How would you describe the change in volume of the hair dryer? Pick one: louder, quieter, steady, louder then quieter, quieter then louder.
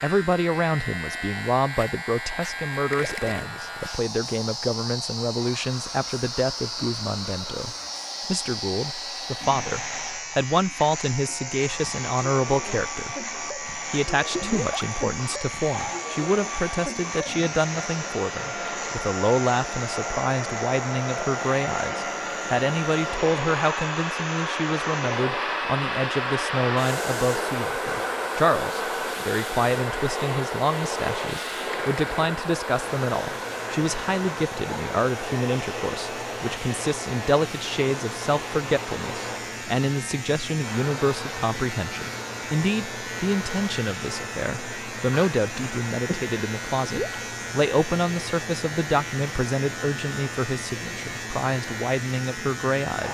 louder then quieter.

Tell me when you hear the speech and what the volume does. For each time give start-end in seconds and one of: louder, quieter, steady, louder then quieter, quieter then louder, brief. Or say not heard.
0.0-53.0 steady.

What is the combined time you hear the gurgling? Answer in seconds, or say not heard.
3 s.